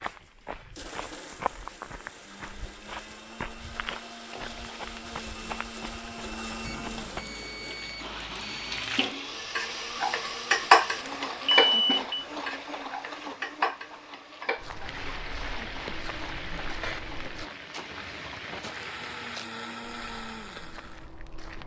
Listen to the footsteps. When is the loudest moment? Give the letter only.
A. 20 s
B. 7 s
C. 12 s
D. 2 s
D.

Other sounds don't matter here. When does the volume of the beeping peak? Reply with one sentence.
The volume of the beeping peaks at 12 seconds.